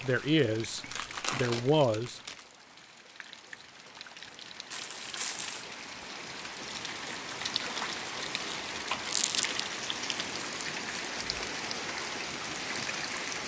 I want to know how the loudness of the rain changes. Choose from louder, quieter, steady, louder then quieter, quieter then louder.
louder.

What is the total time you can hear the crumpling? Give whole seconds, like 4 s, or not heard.
4 s.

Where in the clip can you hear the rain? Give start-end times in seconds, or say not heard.
0.0-13.4.